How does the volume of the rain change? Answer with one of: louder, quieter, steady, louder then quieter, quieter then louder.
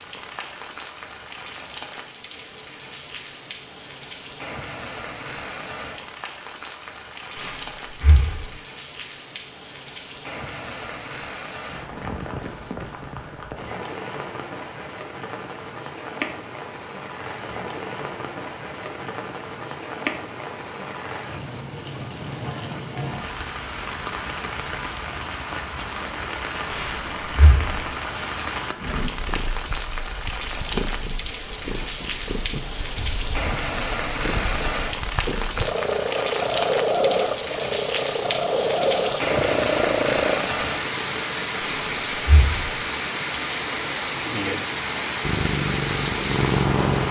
louder.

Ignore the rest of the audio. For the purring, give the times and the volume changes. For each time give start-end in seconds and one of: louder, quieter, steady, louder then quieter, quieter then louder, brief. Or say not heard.
29.1-40.5 louder
45.2-47.0 brief.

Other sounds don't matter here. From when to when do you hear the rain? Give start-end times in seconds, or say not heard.
0.0-47.0.